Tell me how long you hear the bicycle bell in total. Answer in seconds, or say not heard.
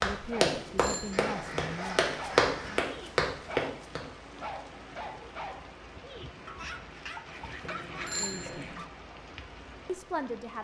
2 s.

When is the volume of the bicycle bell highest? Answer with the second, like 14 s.
8 s.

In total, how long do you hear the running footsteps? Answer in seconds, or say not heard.
4 s.